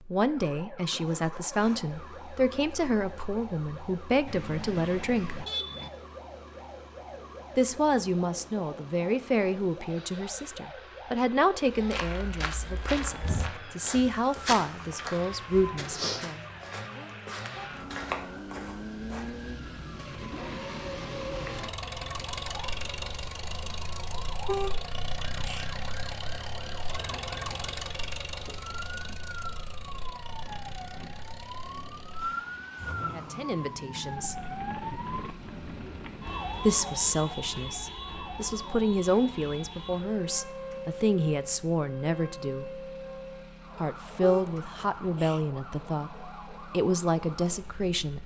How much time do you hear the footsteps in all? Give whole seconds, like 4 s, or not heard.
8 s.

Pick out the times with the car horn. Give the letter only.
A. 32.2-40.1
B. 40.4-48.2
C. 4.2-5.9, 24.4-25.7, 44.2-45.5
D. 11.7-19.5
C.